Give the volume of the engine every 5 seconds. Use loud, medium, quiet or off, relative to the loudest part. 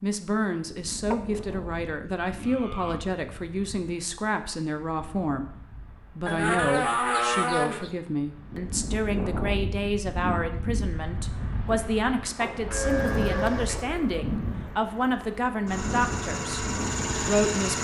off, off, medium, loud.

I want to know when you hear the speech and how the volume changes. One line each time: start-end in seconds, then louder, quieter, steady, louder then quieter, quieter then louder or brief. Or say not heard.
0.0-16.6 steady
17.2-17.7 brief.